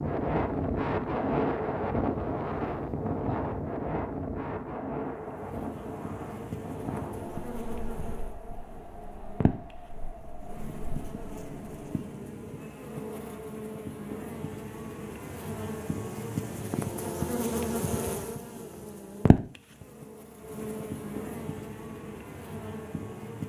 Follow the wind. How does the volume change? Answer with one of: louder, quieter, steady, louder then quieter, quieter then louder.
quieter.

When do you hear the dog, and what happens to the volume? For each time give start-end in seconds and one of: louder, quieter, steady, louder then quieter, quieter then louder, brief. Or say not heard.
not heard.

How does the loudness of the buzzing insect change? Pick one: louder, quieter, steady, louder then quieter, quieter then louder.
louder then quieter.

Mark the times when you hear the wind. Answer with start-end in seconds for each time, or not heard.
0.0-11.8.